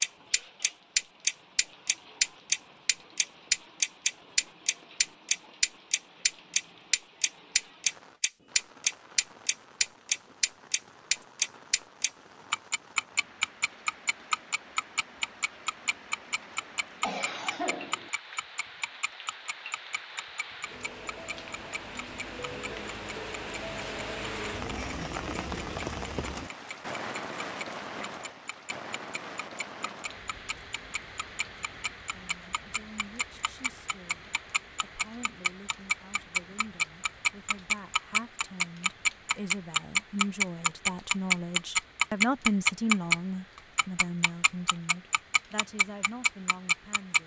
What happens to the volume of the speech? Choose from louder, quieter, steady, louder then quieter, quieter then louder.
louder then quieter.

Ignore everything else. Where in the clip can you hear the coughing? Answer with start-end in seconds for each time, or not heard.
17.0-18.1.